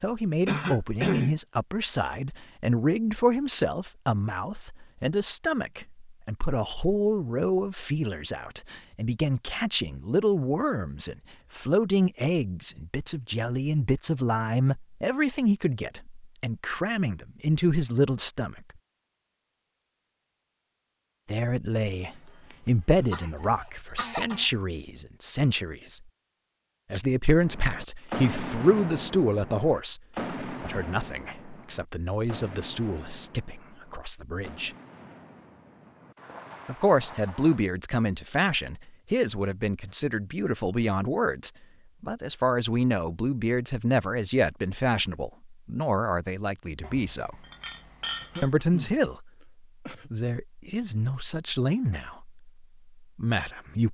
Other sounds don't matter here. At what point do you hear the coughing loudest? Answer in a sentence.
The volume of the coughing peaks at 1 second.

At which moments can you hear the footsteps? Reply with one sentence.
The footsteps can't be heard in this clip.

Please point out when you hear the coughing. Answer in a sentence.
The coughing can be heard from 0.5 to 1.4 s, from 23.1 to 24.6 s and from 48.2 to 50.1 s.